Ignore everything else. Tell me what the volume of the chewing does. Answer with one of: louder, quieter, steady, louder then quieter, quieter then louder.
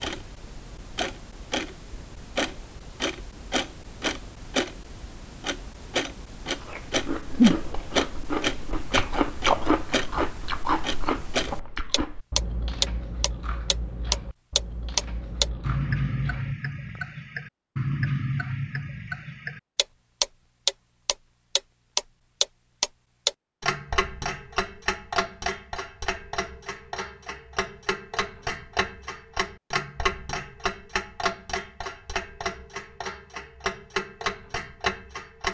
quieter.